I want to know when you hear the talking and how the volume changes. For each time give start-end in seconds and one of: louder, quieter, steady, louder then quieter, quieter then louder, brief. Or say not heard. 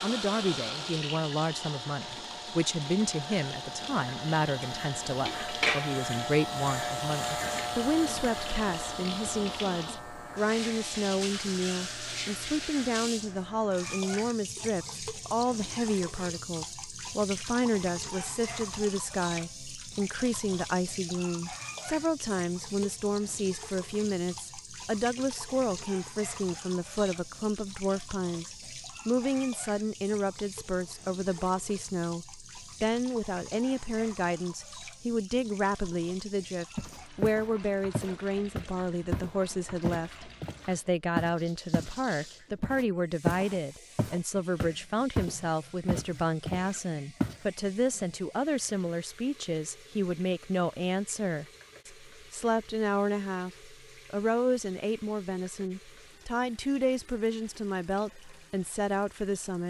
0.0-59.6 steady.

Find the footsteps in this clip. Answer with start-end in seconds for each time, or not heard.
36.8-42.0, 42.6-47.4.